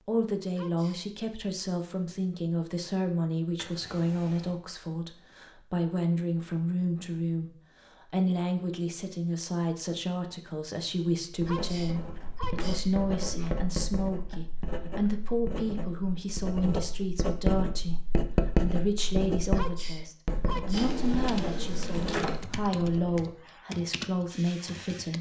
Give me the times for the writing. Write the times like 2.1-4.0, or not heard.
11.2-23.4.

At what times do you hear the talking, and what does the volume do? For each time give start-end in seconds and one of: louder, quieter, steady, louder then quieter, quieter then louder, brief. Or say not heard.
0.1-25.1 steady.